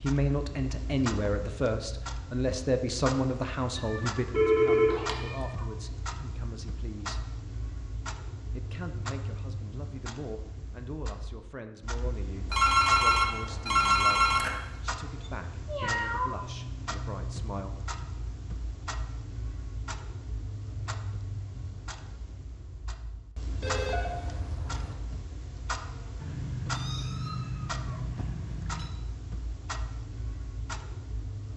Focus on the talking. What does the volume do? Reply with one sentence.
The loudness of the talking goes down.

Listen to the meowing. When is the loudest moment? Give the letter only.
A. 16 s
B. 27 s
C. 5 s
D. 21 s
A.